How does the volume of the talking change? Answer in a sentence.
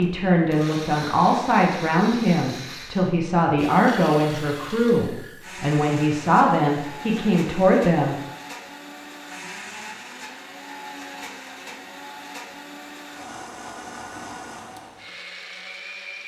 The volume of the talking stays about the same.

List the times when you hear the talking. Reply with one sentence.
You can hear the talking from 0.0 to 8.2 s.